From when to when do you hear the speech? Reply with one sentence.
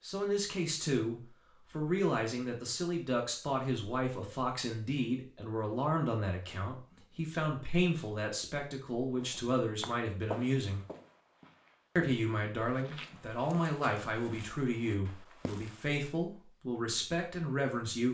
The speech can be heard from 0.0 to 10.8 s and from 11.9 to 18.0 s.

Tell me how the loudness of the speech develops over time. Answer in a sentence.
The volume of the speech stays about the same.